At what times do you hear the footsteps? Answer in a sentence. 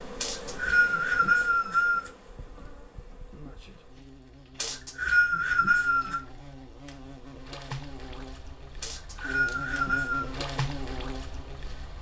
The footsteps can't be heard in this clip.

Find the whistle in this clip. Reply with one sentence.
You can hear the whistle from 0.2 to 2.1 s, from 4.6 to 6.2 s and from 8.8 to 10.3 s.